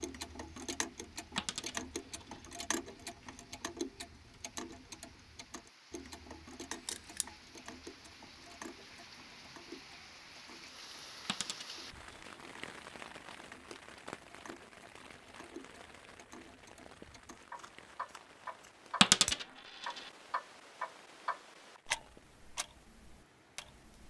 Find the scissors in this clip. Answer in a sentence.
You can hear the scissors from 6.7 to 7.2 s and from 17.4 to 19.4 s.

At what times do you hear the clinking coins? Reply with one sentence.
You can hear the clinking coins from 1.4 to 2.5 s, from 11.2 to 12.3 s and from 19.0 to 20.1 s.